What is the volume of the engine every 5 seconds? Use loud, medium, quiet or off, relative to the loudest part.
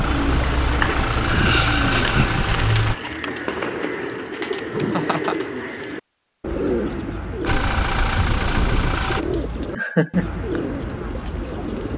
loud, loud, off.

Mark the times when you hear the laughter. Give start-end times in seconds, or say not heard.
1.2-2.5, 4.7-5.3, 9.8-10.4.